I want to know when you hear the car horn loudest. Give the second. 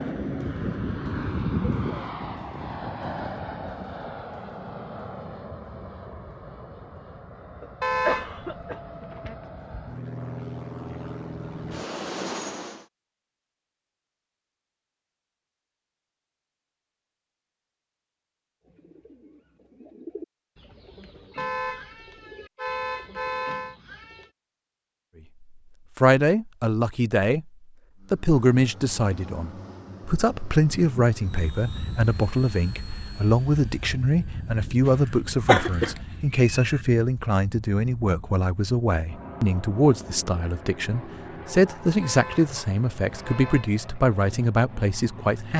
8 s.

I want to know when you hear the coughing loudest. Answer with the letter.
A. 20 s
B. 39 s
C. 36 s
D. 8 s
C.